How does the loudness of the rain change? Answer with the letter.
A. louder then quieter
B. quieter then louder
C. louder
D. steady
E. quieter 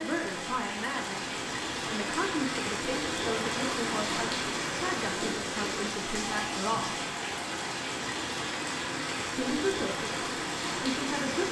D.